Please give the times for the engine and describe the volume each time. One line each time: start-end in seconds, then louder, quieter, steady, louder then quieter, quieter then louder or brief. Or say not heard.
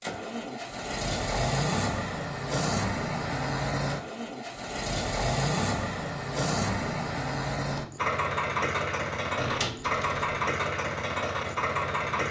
0.0-12.2 steady.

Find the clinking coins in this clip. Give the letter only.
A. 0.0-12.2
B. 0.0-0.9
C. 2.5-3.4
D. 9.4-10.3
D.